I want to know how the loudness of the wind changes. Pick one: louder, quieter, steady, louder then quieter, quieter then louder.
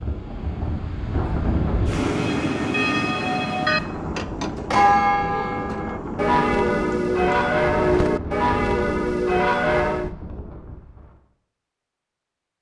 quieter.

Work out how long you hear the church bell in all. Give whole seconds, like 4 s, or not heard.
8 s.